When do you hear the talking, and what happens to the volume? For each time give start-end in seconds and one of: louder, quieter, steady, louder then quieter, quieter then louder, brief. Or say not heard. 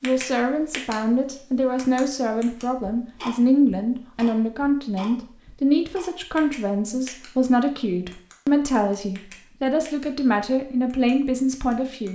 0.0-12.0 steady.